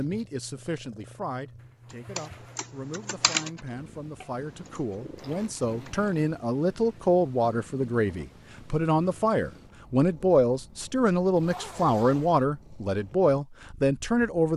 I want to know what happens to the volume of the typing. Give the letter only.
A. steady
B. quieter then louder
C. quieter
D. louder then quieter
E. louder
D.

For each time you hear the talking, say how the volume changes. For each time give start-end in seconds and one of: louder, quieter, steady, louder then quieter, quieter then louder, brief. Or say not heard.
0.0-14.5 louder.